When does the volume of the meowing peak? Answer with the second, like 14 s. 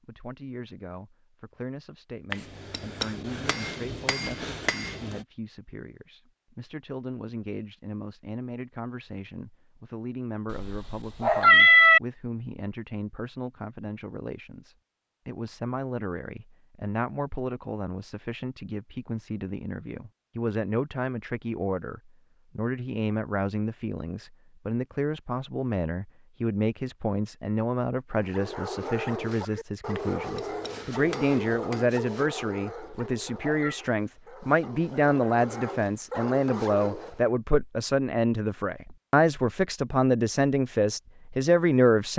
12 s.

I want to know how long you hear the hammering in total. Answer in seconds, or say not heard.
5 s.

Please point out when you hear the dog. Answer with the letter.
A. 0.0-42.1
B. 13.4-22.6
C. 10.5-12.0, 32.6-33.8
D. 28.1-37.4
D.